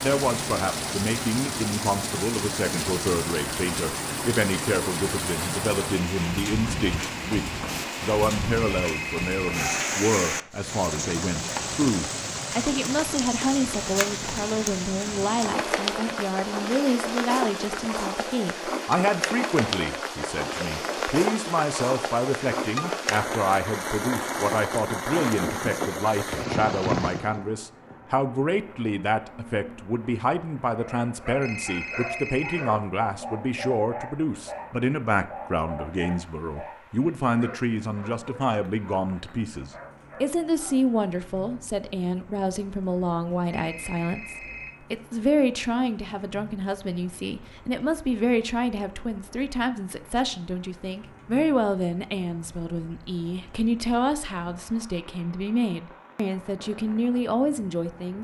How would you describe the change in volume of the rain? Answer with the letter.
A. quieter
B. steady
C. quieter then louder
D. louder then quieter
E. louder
A.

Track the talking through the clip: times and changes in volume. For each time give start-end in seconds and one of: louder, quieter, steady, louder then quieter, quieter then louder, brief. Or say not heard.
0.0-58.1 steady.